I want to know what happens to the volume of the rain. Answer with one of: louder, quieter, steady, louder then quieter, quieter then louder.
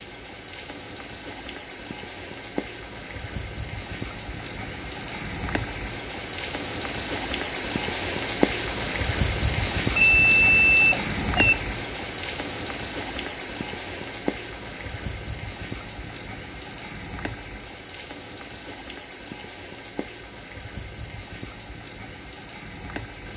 louder then quieter.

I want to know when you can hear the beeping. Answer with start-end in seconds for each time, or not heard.
9.9-11.6.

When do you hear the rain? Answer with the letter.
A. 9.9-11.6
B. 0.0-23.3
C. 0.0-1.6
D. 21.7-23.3
B.